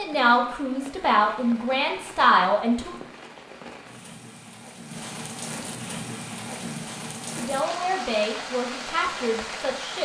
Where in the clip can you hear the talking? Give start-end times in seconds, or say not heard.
0.0-2.9, 7.3-10.0.